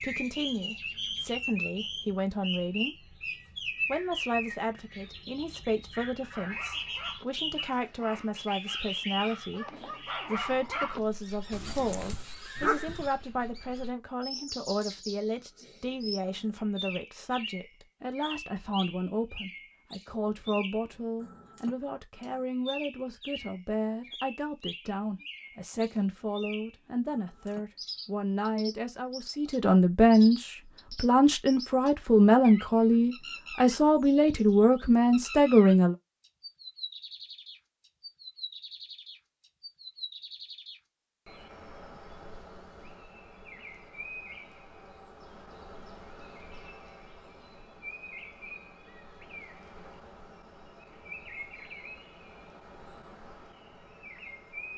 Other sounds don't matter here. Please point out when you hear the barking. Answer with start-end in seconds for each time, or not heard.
6.2-13.1.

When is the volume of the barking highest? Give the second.
13 s.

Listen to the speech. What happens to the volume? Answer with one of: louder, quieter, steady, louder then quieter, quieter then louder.
louder.